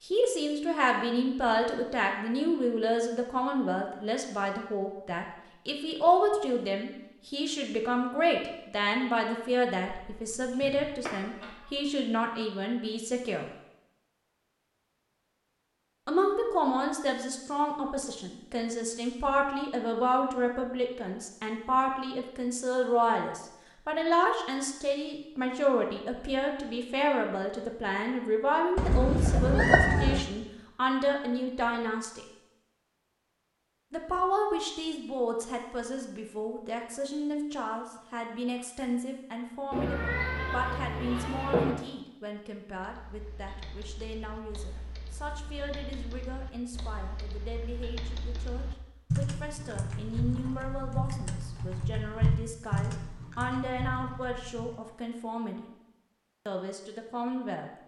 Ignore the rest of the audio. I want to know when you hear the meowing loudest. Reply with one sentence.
The loudest moment of the meowing is at 30 seconds.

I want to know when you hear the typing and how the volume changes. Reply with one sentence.
The typing can be heard from 42.8 to 54.8 s, getting louder.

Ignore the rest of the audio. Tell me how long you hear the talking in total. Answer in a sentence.
The talking can be heard for 53 seconds in total.